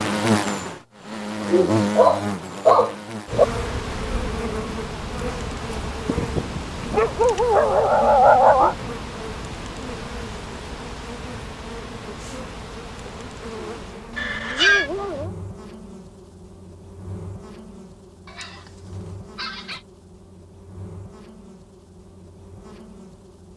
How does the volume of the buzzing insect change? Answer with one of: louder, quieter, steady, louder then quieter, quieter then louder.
quieter.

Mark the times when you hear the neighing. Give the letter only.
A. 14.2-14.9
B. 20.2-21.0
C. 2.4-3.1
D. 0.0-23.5
A.